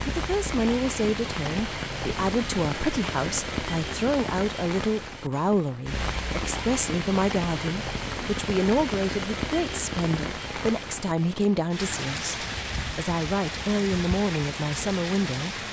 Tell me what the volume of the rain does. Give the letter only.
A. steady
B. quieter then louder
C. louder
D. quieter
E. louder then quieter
A.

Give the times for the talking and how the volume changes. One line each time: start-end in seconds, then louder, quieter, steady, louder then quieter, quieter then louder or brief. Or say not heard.
0.1-15.6 steady.